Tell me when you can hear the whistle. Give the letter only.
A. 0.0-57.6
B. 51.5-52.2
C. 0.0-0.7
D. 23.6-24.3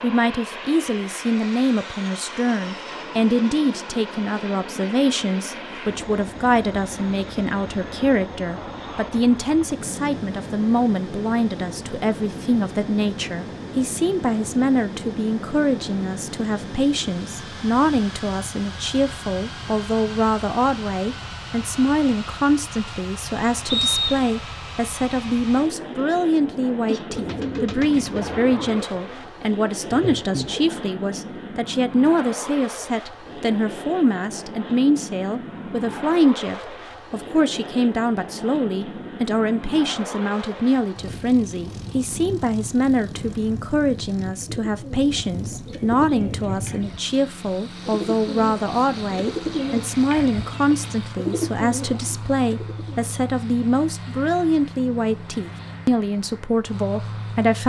D.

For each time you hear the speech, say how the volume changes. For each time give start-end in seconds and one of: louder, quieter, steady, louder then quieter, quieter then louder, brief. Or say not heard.
0.0-57.6 steady.